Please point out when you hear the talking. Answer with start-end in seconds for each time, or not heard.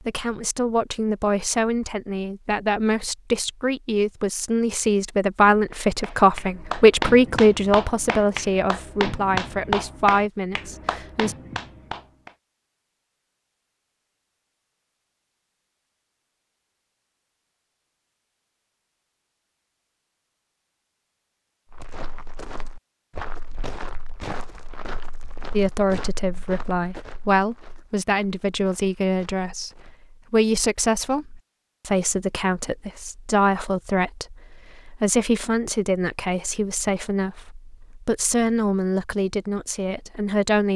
0.1-11.3, 25.5-40.7.